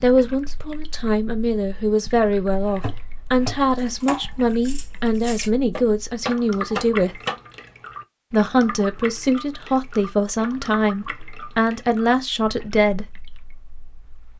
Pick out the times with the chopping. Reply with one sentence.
You can hear the chopping from 2.6 to 7.3 s.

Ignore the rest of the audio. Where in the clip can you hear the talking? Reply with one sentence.
The talking can be heard from 0.0 to 7.2 s and from 8.3 to 13.2 s.